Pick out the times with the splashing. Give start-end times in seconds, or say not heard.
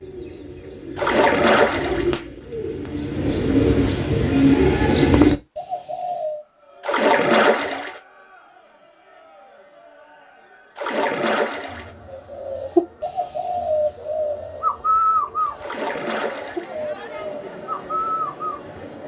0.9-2.1, 6.8-8.0, 10.8-11.9, 15.6-16.8.